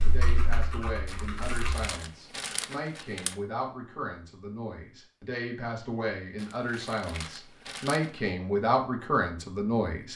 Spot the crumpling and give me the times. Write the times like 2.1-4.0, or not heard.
1.1-3.4, 6.3-8.2.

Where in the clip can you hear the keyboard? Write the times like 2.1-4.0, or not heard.
0.0-1.9.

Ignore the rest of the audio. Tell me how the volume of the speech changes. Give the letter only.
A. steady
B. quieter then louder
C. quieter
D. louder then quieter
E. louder
E.